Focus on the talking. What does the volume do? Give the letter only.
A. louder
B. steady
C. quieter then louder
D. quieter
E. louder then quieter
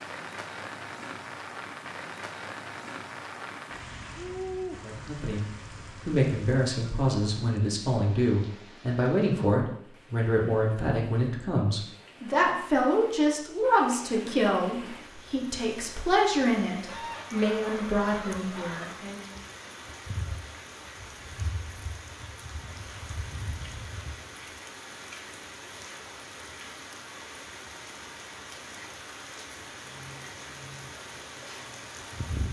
B.